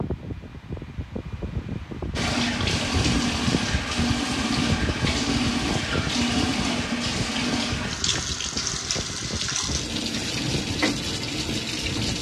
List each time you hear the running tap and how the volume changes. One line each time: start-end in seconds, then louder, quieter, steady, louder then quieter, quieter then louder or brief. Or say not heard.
2.1-12.1 steady.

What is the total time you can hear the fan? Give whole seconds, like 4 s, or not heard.
12 s.